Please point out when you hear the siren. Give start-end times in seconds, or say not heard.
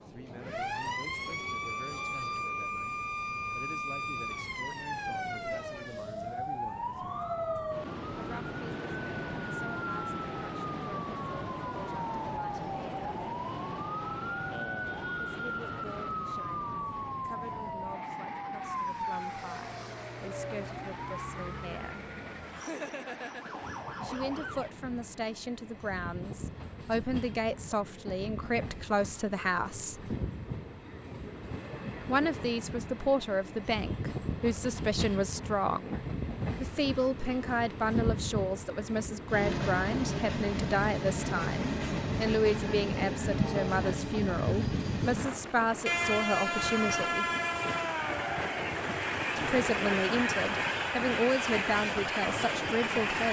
0.0-24.8.